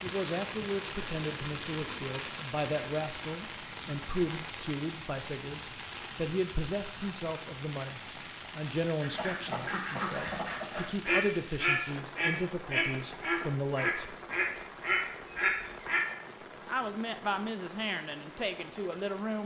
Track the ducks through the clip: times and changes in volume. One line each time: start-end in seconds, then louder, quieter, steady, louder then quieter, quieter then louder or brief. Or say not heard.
9.0-16.1 louder.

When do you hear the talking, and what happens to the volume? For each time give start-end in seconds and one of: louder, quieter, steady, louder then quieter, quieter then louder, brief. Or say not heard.
0.0-14.2 steady
16.6-19.4 brief.